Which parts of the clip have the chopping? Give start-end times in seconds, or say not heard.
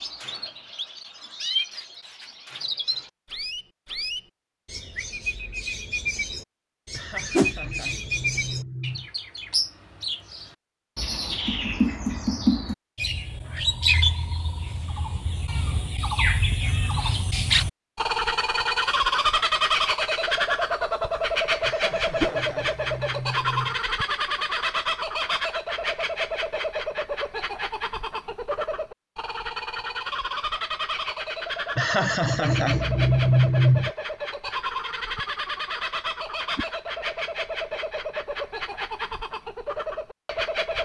not heard.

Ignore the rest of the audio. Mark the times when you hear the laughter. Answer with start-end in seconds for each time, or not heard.
6.9-9.1, 21.6-23.8, 31.8-33.9.